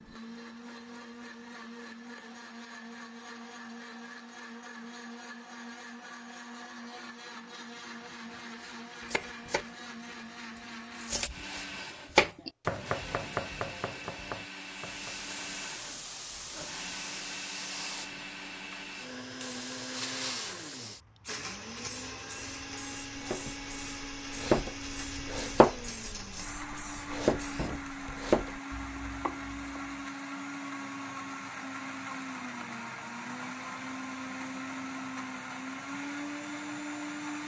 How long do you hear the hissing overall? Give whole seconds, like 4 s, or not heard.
13 s.